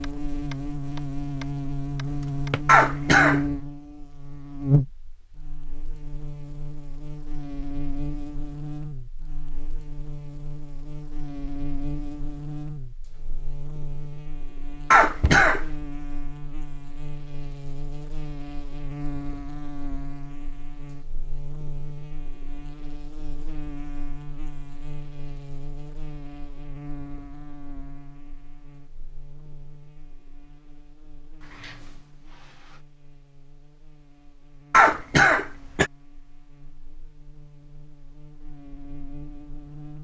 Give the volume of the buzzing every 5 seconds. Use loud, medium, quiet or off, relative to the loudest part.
loud, medium, medium, medium, quiet, quiet, quiet, quiet.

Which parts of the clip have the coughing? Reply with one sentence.
The coughing can be heard from 2.6 to 3.5 s, from 14.9 to 15.7 s and from 34.7 to 35.9 s.